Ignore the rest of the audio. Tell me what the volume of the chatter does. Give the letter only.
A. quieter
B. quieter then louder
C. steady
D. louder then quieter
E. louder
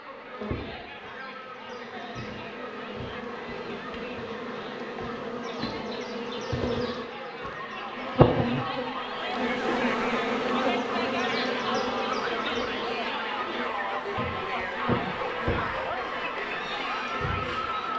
E.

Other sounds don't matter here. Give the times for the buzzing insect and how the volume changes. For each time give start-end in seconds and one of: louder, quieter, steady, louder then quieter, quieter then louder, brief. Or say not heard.
0.0-17.9 louder then quieter.